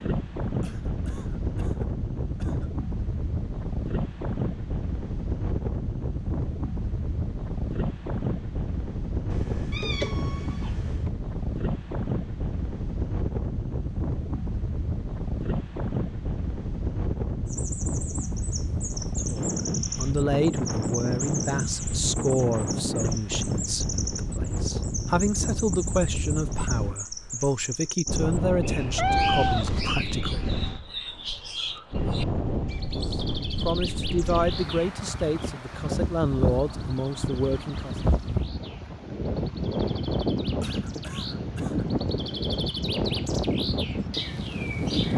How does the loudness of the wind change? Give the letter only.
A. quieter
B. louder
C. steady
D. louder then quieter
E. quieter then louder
C.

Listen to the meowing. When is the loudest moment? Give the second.
29 s.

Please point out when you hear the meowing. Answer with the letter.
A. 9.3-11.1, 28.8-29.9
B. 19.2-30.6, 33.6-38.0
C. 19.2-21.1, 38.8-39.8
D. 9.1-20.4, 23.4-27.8
A.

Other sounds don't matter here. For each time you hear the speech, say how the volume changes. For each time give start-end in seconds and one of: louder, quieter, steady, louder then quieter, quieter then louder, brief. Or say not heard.
19.2-30.6 steady
33.6-38.0 quieter then louder.